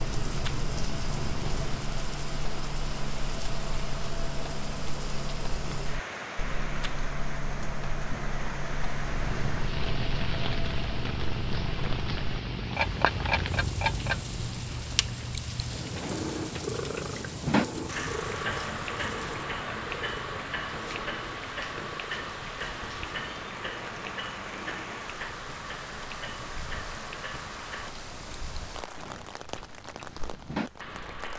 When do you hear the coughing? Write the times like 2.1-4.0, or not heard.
not heard.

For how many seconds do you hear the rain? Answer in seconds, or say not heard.
31 s.